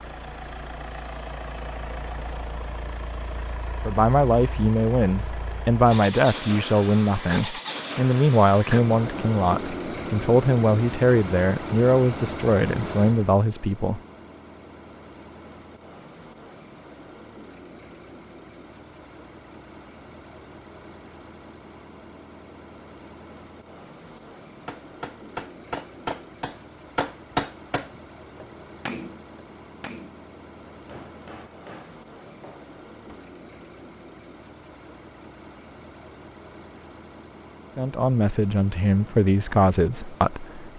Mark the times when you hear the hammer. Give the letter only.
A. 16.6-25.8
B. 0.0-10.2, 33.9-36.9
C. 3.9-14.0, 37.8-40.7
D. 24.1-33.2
D.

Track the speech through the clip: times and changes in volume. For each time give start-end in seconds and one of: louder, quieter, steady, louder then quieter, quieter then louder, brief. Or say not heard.
3.9-14.0 steady
37.8-40.7 brief.